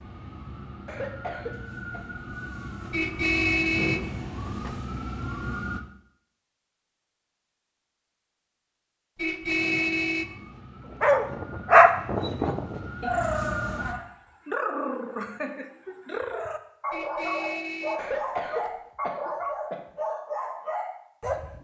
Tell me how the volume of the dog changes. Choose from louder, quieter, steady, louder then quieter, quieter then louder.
quieter.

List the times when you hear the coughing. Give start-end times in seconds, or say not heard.
0.8-2.0, 17.9-19.8.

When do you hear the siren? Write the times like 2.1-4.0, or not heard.
0.0-5.8, 9.4-13.9.